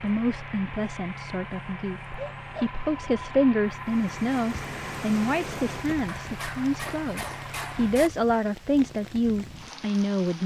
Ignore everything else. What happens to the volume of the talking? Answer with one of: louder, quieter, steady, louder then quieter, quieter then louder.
louder.